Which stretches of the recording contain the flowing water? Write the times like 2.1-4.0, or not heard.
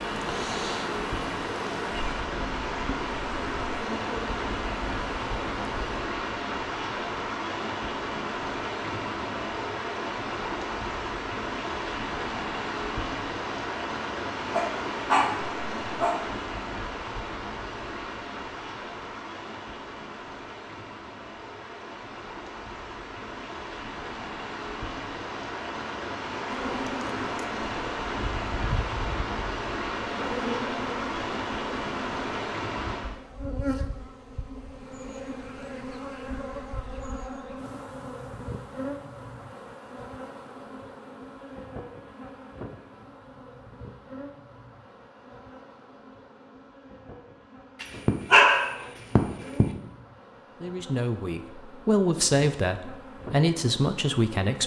0.0-33.1.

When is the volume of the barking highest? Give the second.
48 s.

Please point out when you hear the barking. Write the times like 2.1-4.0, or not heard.
14.5-16.2, 47.8-49.6.